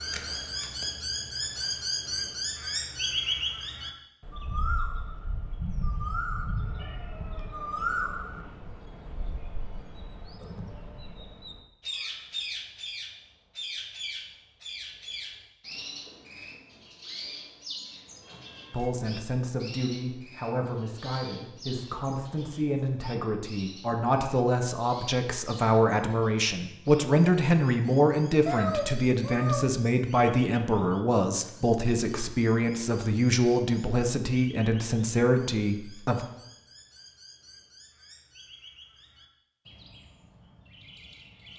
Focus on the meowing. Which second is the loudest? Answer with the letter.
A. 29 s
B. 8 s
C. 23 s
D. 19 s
A.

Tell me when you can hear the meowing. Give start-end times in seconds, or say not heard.
6.5-8.4, 18.2-18.9, 28.4-29.8.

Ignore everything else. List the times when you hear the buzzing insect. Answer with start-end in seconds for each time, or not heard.
not heard.